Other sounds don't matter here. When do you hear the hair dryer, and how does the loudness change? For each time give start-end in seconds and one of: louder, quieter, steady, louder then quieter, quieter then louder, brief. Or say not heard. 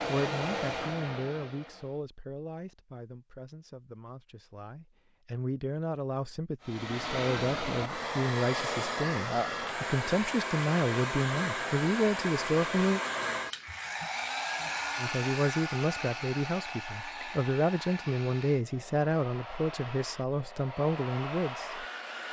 0.0-2.0 brief
6.6-22.2 quieter.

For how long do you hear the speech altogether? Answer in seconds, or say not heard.
20 s.